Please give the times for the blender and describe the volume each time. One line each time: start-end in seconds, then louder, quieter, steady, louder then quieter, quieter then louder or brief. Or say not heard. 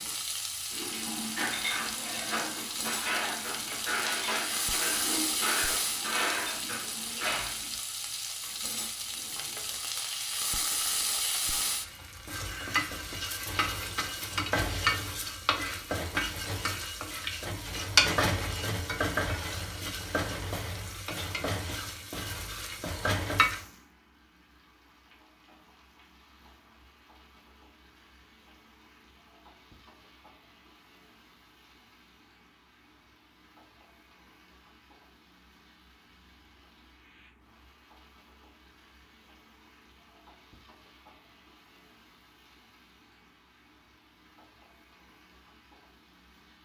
not heard.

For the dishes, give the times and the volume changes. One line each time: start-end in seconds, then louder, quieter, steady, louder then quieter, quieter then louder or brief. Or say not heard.
0.7-7.8 steady.